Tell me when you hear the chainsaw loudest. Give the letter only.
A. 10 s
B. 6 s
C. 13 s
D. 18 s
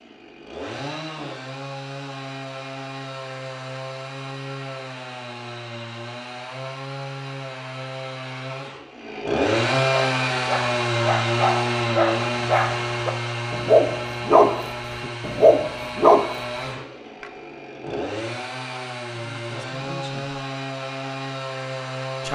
A.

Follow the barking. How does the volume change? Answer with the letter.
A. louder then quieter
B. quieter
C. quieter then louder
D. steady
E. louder
E.